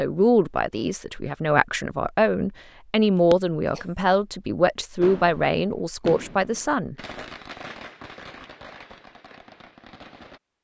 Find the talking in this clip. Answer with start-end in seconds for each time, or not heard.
0.0-7.0.